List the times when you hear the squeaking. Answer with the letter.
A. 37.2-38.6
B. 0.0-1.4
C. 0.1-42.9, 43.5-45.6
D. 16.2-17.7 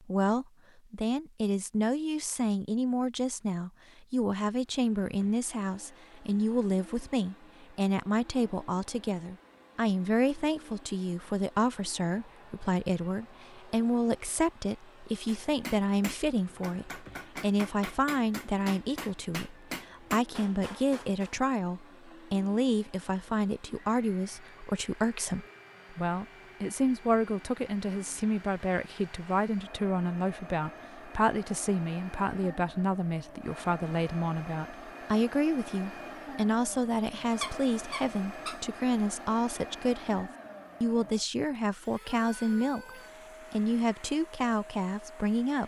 A.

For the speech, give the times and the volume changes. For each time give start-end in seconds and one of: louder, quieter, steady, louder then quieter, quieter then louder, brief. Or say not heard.
0.1-42.9 steady
43.5-45.6 brief.